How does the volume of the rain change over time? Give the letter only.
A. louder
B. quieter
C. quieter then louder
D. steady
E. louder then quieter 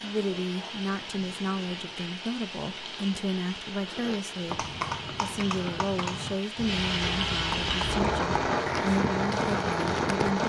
A.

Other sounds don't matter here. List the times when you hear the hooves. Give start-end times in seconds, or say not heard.
4.5-10.3.